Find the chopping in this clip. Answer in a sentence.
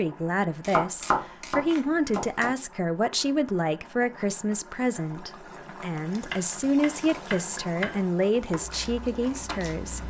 You can hear the chopping from 0.6 to 2.5 s and from 6.3 to 8.2 s.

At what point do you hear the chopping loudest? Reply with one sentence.
The volume of the chopping peaks at 1 second.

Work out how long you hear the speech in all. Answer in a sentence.
The speech can be heard for 10 seconds in total.